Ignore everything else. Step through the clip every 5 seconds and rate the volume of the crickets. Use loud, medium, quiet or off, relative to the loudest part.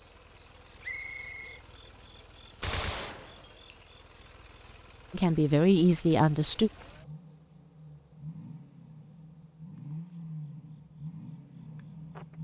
loud, medium, quiet.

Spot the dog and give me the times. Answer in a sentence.
The dog can't be heard in this clip.